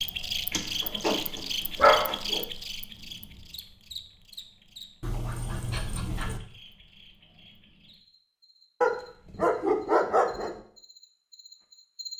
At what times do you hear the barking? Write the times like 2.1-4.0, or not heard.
0.5-2.5, 5.0-6.4, 8.8-10.6.